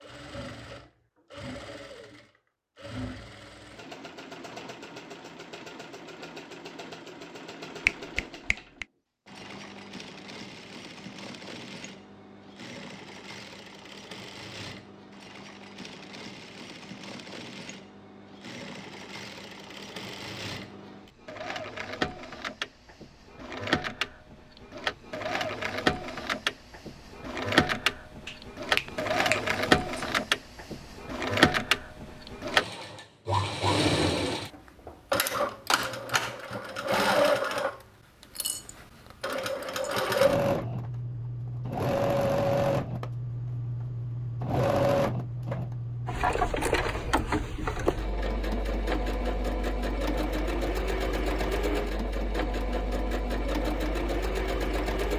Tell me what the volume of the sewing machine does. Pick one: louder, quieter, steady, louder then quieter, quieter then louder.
louder.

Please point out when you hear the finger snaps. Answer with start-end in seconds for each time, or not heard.
7.8-8.8, 28.2-30.2.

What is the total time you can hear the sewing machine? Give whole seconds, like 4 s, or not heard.
55 s.